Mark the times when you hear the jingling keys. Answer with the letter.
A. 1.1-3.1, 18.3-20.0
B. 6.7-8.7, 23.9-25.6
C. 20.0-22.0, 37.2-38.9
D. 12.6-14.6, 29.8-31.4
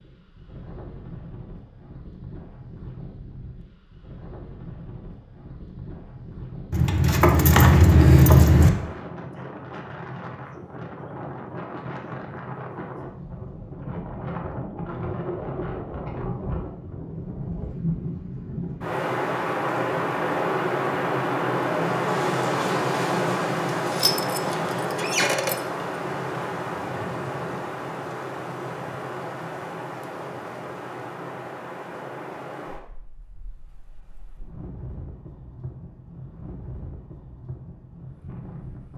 B.